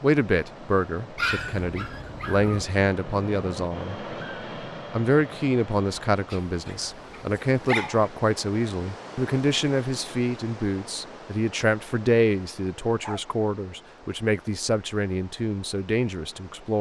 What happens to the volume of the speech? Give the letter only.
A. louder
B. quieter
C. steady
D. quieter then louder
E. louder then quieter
C.